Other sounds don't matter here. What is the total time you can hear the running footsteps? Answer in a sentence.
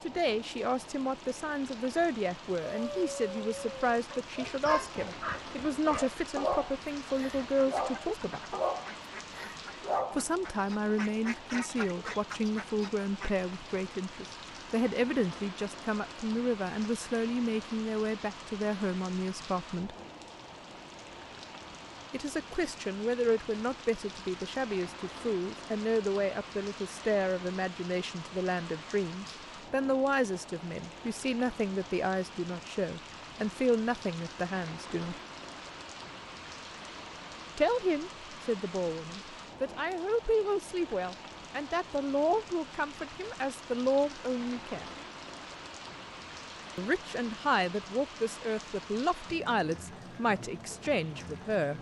You can't hear the running footsteps here.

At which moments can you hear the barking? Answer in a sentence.
The barking can be heard from 2.6 to 10.2 s.